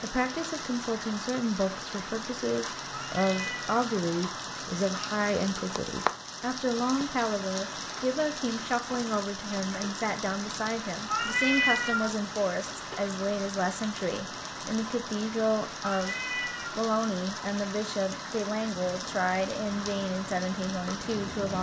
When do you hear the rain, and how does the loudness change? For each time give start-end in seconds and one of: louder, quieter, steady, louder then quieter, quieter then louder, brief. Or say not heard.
0.0-21.5 steady.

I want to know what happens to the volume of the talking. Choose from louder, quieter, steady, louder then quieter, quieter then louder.
steady.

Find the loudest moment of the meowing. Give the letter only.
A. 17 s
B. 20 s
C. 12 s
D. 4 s
C.